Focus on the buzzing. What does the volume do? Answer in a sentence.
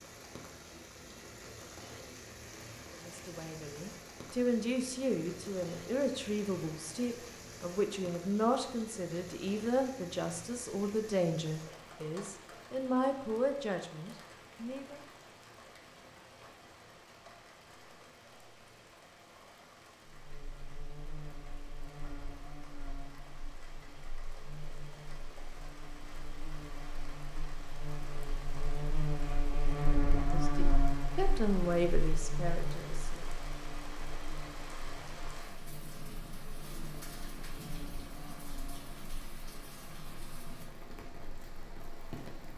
The loudness of the buzzing goes up, then down.